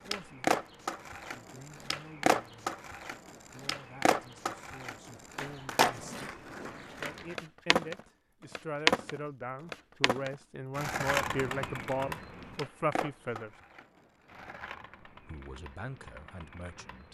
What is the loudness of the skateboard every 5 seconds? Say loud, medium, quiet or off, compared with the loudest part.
loud, loud, medium, quiet.